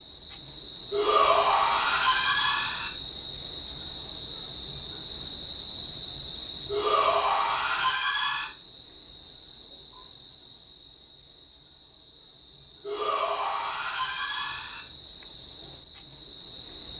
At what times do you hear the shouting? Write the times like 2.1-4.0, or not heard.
0.9-2.9, 6.7-8.5, 12.8-14.8.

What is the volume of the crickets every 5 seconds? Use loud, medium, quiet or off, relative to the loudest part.
loud, loud, medium, medium.